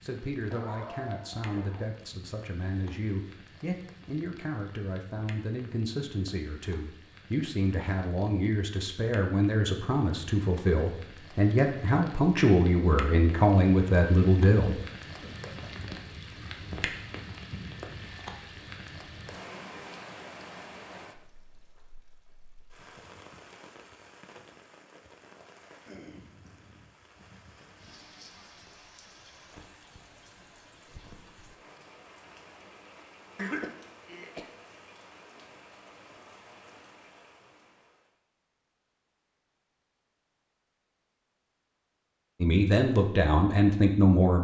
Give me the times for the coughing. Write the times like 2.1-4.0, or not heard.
0.5-1.9, 15.2-15.9, 33.4-34.5.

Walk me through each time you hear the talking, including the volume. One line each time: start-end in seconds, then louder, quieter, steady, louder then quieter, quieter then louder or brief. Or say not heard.
0.0-14.8 louder
42.4-44.3 brief.